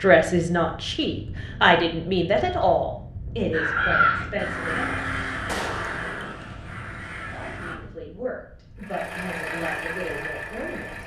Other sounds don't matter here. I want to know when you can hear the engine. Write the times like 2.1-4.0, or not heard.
8.8-11.0.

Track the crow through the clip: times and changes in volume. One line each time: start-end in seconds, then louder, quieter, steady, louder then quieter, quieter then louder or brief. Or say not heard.
3.5-7.8 quieter.